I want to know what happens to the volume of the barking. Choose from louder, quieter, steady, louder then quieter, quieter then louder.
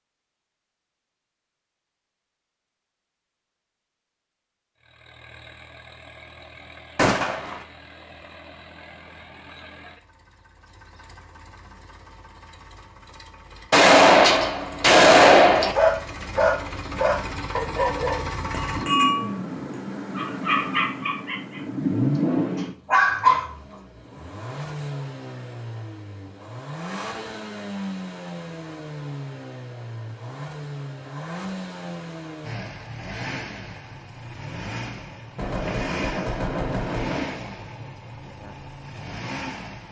quieter then louder.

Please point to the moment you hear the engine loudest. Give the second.
22 s.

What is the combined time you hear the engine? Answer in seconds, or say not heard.
35 s.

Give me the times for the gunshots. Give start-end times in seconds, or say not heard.
7.0-7.7, 13.7-15.8, 35.4-37.4.